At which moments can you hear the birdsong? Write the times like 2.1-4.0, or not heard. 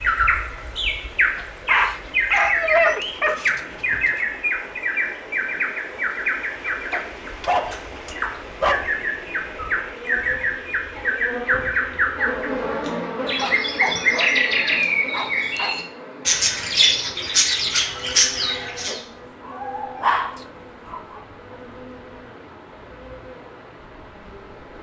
0.0-19.0.